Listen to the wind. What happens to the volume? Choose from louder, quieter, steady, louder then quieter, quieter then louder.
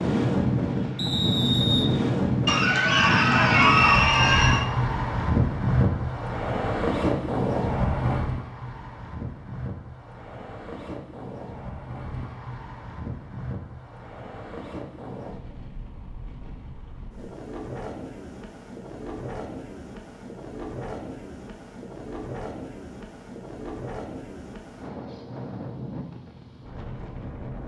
quieter.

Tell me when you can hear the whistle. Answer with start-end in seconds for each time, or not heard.
0.9-1.9.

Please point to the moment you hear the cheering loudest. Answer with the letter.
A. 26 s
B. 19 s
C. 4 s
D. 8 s
C.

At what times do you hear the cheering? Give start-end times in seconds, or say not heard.
2.5-4.7.